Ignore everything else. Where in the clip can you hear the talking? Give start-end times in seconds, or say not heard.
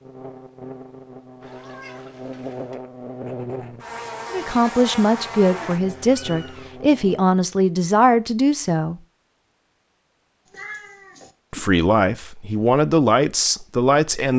4.3-9.0, 11.5-14.3.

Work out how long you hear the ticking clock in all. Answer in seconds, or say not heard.
not heard.